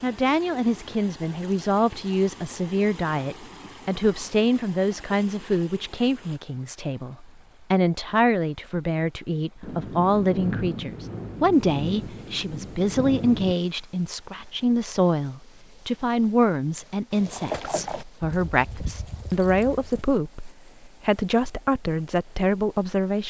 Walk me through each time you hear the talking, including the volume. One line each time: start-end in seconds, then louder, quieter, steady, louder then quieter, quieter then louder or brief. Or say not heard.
0.0-23.2 steady.